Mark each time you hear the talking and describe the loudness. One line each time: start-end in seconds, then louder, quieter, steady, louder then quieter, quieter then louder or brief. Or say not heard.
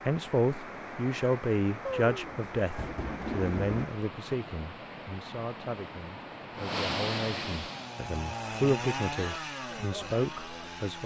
0.1-11.0 quieter then louder.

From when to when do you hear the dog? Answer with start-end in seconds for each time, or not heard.
not heard.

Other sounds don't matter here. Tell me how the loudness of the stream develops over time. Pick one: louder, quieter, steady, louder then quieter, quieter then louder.
louder.